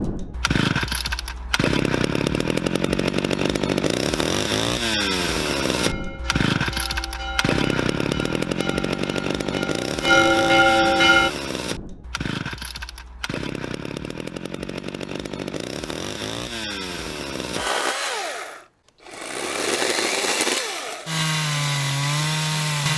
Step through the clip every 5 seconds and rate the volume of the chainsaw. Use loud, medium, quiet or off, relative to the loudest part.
loud, loud, medium, medium, loud.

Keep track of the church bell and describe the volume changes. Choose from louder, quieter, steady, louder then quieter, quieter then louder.
louder.